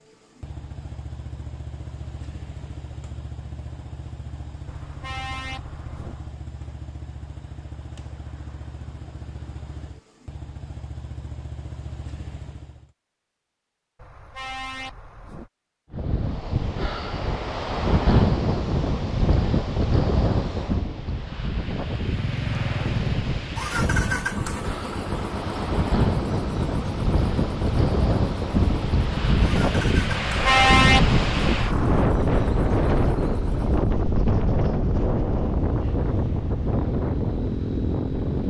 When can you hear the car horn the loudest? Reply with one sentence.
The volume of the car horn peaks at 31 seconds.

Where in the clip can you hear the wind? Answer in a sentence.
You can hear the wind from 15.9 to 38.4 s.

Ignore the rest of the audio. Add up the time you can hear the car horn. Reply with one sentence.
You can hear the car horn for 5 seconds altogether.